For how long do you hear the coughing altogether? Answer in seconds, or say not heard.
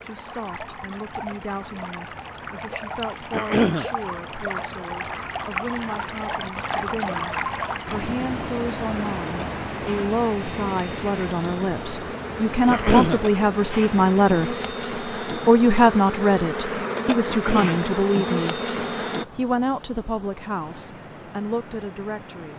2 s.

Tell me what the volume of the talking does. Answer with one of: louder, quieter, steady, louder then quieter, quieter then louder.
louder then quieter.